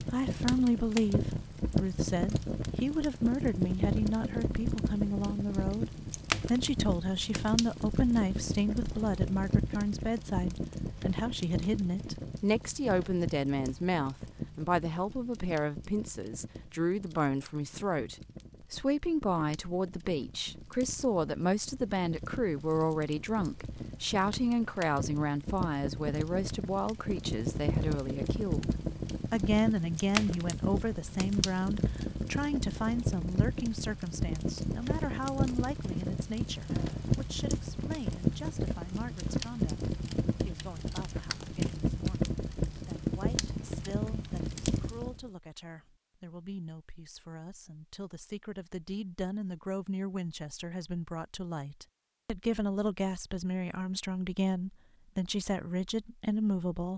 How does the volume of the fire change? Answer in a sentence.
The loudness of the fire goes down, then up.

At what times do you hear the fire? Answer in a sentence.
You can hear the fire from 0.0 to 45.2 s.